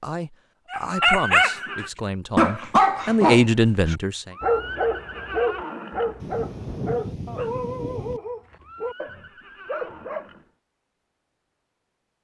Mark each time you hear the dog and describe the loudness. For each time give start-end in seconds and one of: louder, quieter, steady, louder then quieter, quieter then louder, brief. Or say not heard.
0.7-1.6 brief
2.4-10.3 quieter.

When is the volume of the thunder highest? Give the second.
7 s.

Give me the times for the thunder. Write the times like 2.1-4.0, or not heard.
6.2-8.2.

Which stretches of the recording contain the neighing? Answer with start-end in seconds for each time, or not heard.
0.8-1.9, 4.3-6.2, 8.6-10.5.